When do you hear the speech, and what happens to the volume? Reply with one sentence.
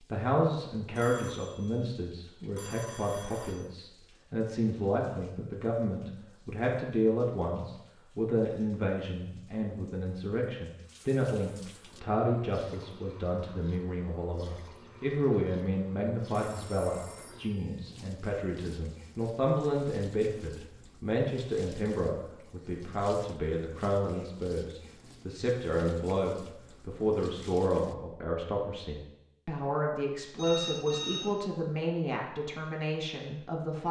The speech can be heard from 0.1 to 33.8 s, at a steady volume.